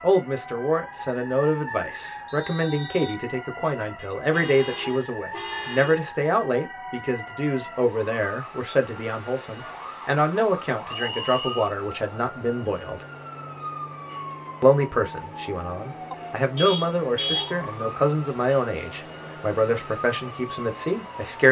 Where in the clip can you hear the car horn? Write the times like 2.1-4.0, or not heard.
4.0-6.0, 16.1-17.6.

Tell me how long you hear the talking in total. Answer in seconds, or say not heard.
20 s.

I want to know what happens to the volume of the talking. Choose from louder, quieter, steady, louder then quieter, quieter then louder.
steady.